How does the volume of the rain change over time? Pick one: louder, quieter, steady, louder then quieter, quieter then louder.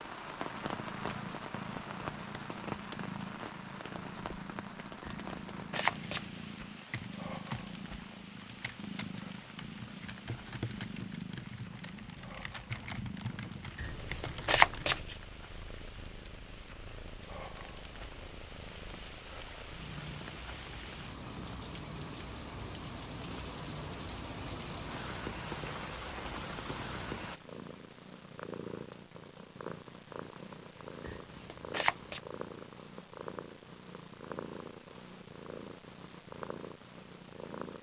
quieter then louder.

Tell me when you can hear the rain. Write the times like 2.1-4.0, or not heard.
0.0-27.4.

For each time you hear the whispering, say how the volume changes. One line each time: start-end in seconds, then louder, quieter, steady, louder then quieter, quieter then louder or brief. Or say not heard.
not heard.